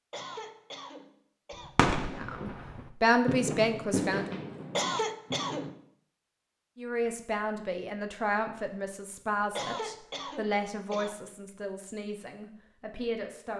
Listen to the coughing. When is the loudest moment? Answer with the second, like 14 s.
5 s.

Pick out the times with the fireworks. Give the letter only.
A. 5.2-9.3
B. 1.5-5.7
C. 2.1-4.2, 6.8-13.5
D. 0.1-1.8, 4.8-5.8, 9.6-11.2
B.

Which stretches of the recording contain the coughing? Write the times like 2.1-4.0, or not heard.
0.1-1.8, 4.8-5.8, 9.6-11.2.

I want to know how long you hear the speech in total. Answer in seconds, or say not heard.
9 s.